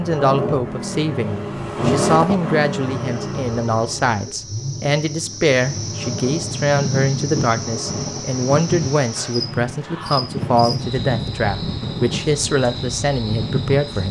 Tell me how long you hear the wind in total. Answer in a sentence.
The wind can be heard for 8 seconds in total.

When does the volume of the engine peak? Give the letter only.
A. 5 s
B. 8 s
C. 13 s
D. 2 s
D.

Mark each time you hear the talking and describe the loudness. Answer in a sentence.
You can hear the talking from 0.0 to 14.0 s, at a steady volume.